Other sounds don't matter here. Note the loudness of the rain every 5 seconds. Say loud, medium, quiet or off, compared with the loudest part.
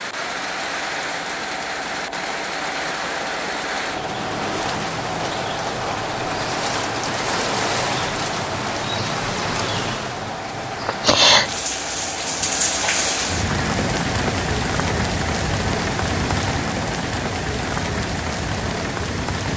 medium, loud, loud, loud.